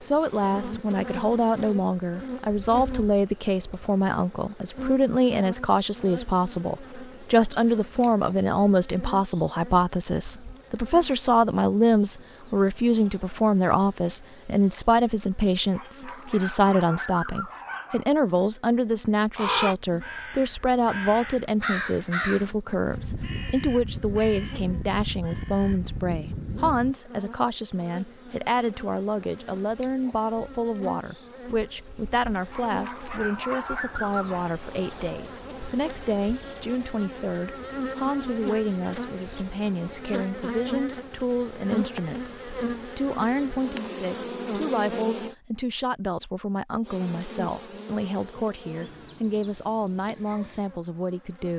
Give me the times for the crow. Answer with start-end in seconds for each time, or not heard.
19.4-26.9.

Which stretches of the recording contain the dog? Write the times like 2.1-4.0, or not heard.
15.7-18.1, 32.5-34.5.